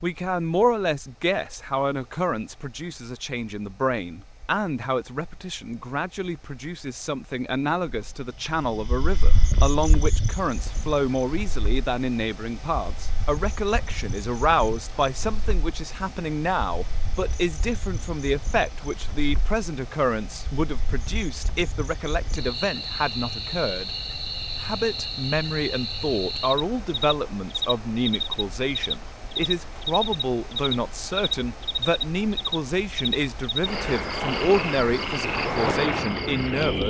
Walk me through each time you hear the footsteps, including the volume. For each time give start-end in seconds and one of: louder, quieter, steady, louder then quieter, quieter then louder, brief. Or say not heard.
not heard.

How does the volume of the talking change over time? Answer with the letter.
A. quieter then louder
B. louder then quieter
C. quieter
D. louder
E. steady
E.